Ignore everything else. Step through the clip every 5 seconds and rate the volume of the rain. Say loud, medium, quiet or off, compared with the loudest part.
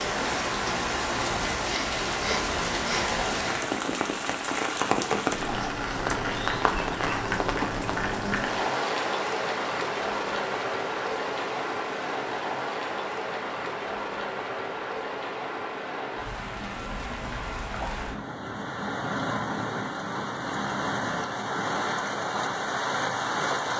loud, loud, loud, medium, loud.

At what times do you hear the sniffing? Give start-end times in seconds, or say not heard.
1.6-3.1.